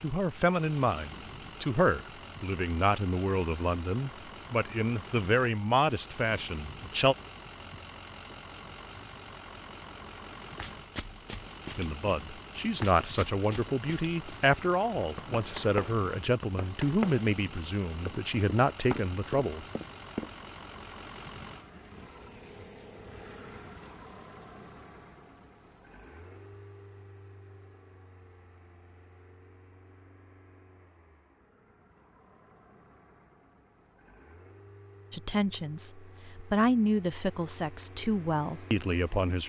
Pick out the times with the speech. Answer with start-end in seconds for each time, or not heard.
0.0-7.2, 11.8-19.6, 35.1-39.4.